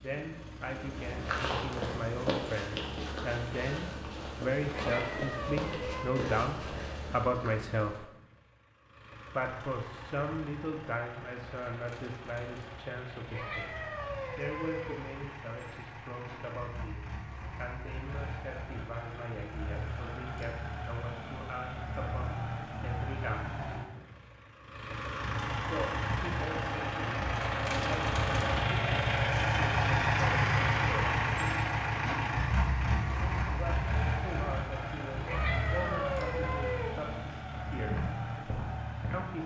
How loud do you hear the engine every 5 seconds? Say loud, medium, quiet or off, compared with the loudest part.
quiet, quiet, quiet, quiet, medium, loud, loud, medium.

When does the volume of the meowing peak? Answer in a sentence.
The loudest moment of the meowing is at 36 seconds.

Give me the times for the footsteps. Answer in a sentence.
You can hear the footsteps from 0.7 to 7.6 s and from 37.9 to 39.2 s.